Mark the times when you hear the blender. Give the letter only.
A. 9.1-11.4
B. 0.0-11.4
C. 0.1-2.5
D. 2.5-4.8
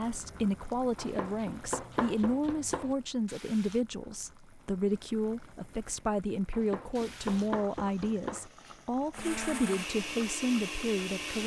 A.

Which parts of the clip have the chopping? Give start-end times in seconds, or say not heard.
0.9-3.0, 6.5-8.5.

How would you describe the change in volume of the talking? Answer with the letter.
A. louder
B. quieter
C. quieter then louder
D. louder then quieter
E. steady
E.